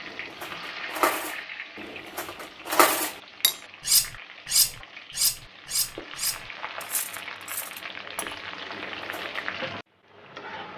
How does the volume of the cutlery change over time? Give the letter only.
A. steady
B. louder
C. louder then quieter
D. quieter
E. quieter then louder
C.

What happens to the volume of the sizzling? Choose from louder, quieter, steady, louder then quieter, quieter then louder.
quieter then louder.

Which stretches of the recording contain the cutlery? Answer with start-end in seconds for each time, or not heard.
0.1-9.4.